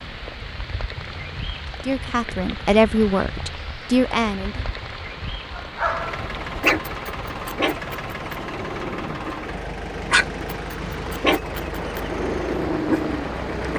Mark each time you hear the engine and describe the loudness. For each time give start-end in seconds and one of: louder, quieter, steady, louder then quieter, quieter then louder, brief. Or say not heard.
0.0-13.7 louder.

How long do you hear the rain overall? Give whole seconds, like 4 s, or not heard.
14 s.